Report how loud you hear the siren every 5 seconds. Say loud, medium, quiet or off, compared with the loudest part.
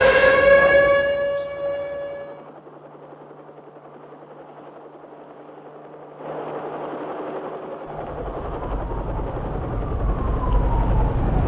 loud, quiet, medium.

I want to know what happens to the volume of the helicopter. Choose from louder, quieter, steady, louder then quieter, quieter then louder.
louder.